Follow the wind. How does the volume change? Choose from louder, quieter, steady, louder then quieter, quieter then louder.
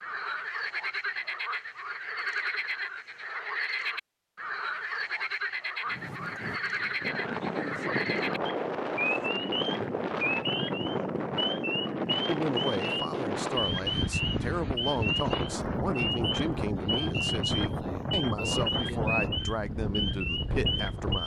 steady.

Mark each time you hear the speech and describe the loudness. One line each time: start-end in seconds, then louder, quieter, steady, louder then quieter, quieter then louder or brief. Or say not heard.
12.2-21.2 steady.